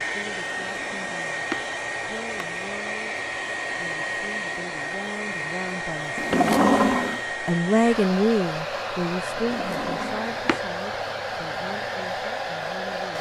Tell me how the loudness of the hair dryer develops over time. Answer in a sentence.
The loudness of the hair dryer stays about the same.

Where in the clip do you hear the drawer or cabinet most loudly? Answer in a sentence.
The loudest moment of the drawer or cabinet is at 7 seconds.